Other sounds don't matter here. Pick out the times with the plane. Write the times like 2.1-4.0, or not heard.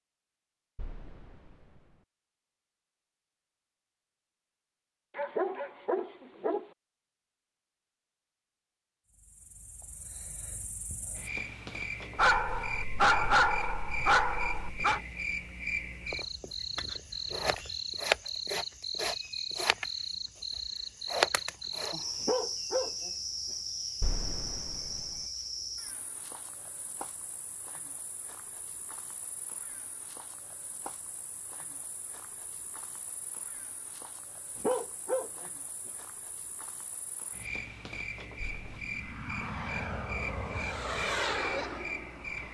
38.7-42.5.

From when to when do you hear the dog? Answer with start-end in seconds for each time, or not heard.
5.2-6.7, 12.2-15.0, 22.2-22.9, 34.6-35.3.